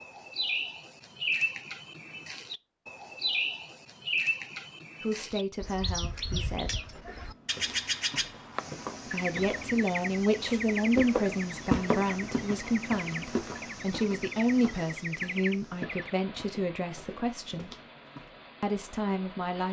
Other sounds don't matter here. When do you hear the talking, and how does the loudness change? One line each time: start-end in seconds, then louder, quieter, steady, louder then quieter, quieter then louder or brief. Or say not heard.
5.0-6.8 brief
9.1-17.8 quieter
18.6-19.6 brief.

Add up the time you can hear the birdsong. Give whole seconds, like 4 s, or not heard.
16 s.